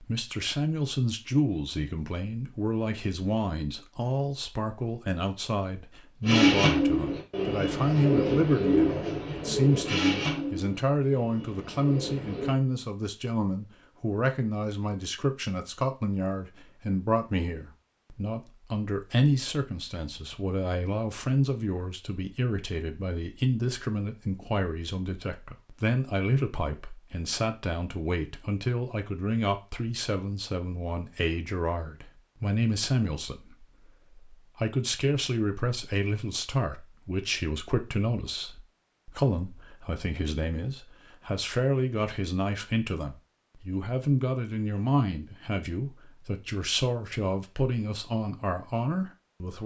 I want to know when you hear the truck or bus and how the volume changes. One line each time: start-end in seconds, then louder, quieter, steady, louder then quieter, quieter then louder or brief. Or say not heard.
not heard.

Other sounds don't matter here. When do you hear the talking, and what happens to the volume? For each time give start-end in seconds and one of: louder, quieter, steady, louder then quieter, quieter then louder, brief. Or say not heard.
0.0-49.6 steady.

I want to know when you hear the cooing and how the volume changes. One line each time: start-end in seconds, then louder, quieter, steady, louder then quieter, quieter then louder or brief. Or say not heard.
6.2-12.6 quieter.